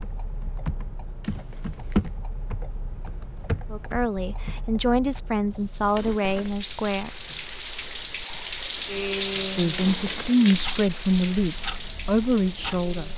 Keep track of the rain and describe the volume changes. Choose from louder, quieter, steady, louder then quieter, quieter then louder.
louder then quieter.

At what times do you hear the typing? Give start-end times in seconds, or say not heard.
0.0-4.7.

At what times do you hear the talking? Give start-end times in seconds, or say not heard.
3.7-7.1, 9.4-13.1.